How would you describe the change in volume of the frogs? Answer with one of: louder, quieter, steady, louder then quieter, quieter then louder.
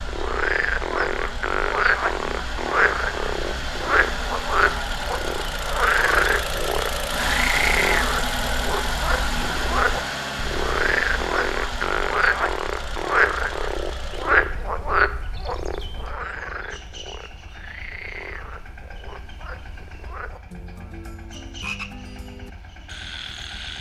quieter.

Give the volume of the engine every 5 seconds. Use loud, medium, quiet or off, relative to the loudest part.
medium, loud, medium, quiet, quiet.